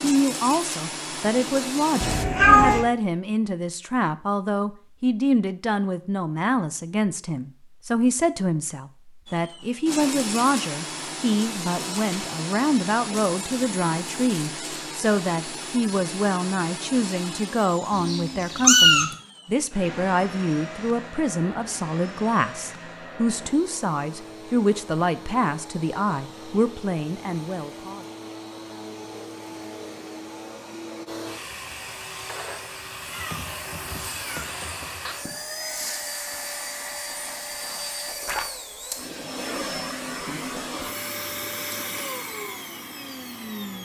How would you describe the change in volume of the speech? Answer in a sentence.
The loudness of the speech stays about the same.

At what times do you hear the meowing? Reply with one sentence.
The meowing can be heard from 2.0 to 2.9 s, from 17.9 to 19.1 s and from 33.1 to 35.1 s.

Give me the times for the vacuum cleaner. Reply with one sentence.
You can hear the vacuum cleaner from 0.0 to 2.2 s and from 9.2 to 43.8 s.